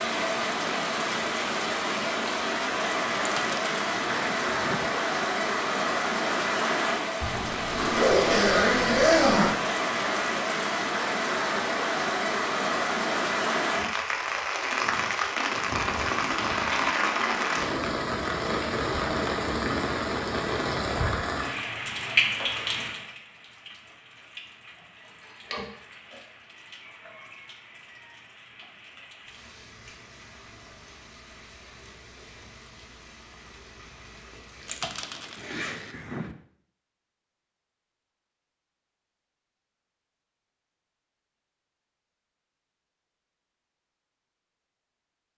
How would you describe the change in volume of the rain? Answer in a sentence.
The volume of the rain goes down.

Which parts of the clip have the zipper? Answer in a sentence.
You can hear the zipper from 7.2 to 9.6 s, from 25.5 to 26.1 s and from 34.5 to 35.8 s.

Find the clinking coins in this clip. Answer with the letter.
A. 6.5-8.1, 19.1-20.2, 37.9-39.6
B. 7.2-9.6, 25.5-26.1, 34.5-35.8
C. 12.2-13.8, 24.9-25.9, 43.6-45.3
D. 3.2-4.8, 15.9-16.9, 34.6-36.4
D.